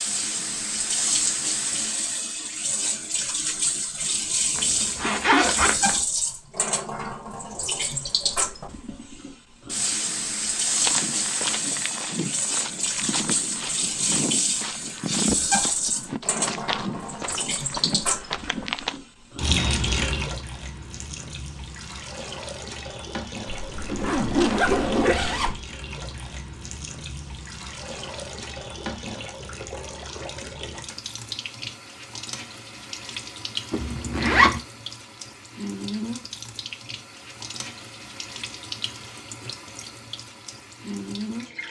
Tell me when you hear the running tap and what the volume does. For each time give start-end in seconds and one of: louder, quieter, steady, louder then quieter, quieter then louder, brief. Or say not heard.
0.0-41.6 quieter.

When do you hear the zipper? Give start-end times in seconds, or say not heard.
4.5-6.0, 23.4-25.6, 33.7-34.6.